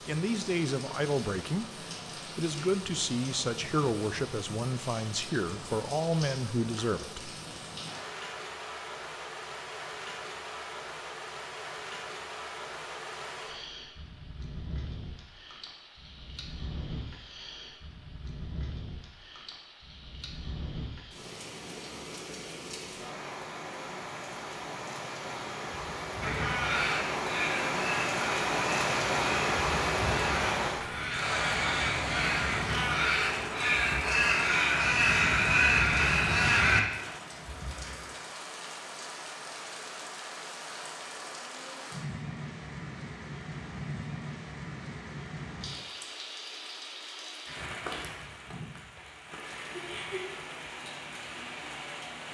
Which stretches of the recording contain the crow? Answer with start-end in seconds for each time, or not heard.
26.2-36.8.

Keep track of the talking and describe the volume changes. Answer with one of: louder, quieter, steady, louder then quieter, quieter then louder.
steady.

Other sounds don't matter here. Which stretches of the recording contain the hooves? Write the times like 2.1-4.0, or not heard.
not heard.